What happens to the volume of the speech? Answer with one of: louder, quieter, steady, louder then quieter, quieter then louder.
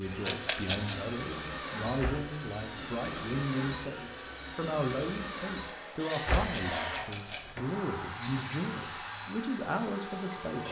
steady.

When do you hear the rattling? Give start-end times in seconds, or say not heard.
0.2-0.9, 6.1-7.5.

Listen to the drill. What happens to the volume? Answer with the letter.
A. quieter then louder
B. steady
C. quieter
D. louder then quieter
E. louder
C.